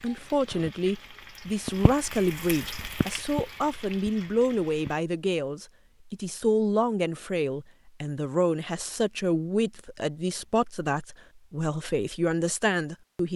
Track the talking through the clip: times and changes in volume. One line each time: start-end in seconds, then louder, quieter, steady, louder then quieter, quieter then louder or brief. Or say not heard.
0.0-13.3 steady.